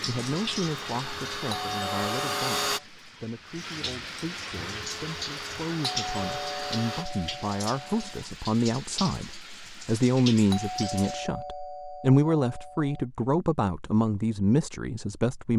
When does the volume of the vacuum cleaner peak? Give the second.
2 s.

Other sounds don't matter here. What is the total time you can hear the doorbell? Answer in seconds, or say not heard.
6 s.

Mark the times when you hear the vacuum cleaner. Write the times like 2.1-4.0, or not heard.
0.0-2.8, 4.5-7.0.